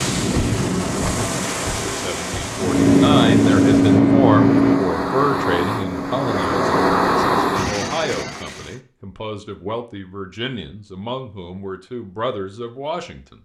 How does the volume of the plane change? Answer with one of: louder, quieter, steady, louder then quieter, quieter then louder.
quieter.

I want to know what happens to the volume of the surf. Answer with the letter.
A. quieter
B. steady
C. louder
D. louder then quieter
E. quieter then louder
E.